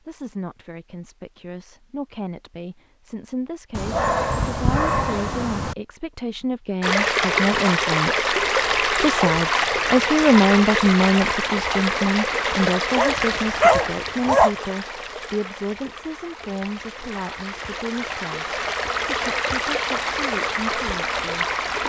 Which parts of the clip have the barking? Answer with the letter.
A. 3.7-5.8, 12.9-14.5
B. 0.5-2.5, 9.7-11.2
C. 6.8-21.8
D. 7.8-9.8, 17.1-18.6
A.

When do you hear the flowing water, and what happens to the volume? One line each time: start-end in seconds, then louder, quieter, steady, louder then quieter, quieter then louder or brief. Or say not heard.
6.8-21.8 quieter then louder.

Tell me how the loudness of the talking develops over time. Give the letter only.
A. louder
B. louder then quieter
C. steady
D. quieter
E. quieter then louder
B.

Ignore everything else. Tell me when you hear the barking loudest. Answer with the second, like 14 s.
14 s.